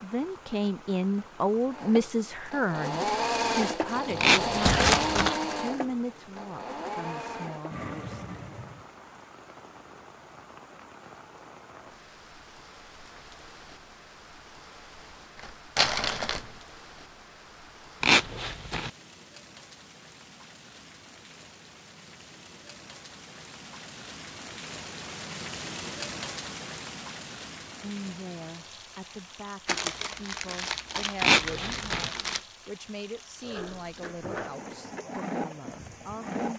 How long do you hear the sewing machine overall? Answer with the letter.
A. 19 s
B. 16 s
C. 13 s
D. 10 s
D.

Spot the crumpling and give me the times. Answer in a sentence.
You can hear the crumpling from 4.7 to 5.3 s, from 15.3 to 16.5 s and from 29.6 to 32.4 s.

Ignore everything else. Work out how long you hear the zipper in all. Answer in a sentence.
The zipper can be heard for 3 seconds in total.